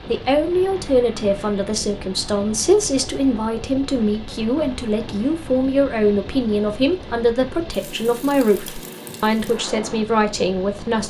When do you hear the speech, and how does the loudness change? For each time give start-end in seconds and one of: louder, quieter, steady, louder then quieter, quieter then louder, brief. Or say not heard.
0.1-11.0 steady.